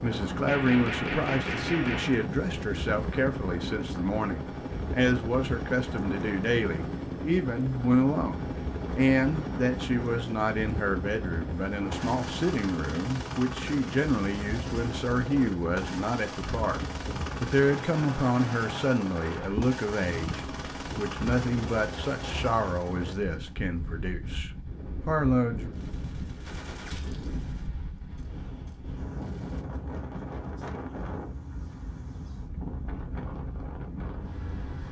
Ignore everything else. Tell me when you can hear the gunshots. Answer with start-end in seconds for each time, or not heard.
0.5-2.3, 25.7-29.6.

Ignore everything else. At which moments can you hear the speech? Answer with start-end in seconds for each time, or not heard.
0.0-16.8, 17.4-25.7.